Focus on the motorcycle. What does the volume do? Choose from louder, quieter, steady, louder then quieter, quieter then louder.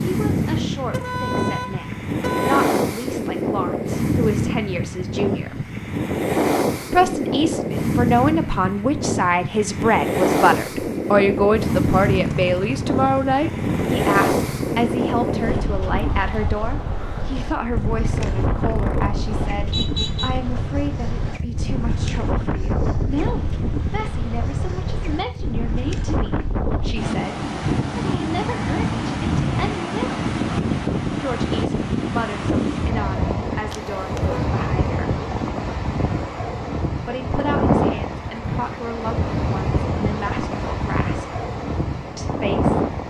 steady.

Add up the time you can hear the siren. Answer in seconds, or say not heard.
not heard.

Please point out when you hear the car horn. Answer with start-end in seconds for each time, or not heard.
0.9-2.6, 19.7-20.3, 33.7-34.5.